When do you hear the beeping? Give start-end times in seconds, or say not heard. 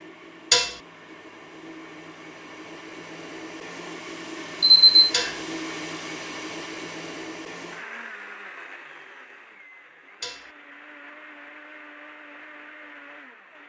4.6-5.3.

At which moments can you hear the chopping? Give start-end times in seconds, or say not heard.
not heard.